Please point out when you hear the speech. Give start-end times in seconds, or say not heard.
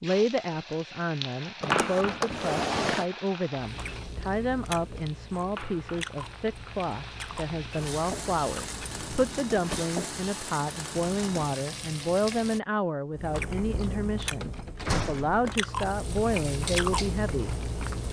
0.0-17.6.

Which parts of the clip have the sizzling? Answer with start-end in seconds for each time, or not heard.
0.0-12.6, 15.8-18.0.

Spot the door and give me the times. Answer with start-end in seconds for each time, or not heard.
1.6-3.0, 8.9-9.9, 14.4-15.6.